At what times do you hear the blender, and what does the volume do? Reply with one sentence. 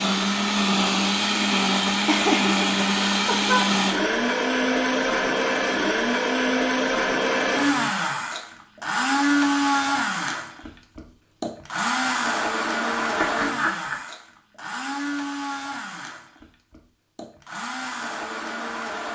You can hear the blender from 0.0 to 19.1 s, getting quieter.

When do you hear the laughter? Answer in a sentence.
The laughter can be heard from 2.0 to 3.6 s and from 12.9 to 13.9 s.